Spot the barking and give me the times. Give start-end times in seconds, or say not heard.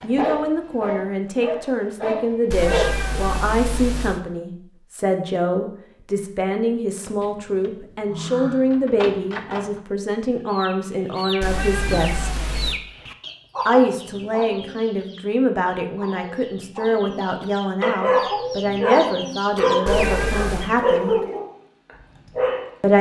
0.0-3.2, 17.8-22.8.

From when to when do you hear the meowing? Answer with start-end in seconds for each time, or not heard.
2.5-4.2, 11.4-12.8, 19.9-20.7.